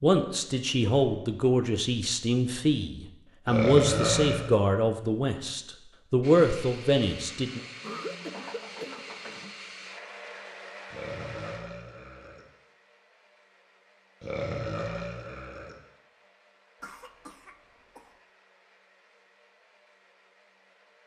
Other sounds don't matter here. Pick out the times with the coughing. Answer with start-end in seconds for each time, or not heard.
0.9-1.4, 7.8-9.6, 16.8-18.1.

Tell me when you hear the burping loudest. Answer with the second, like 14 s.
4 s.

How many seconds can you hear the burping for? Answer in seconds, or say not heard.
4 s.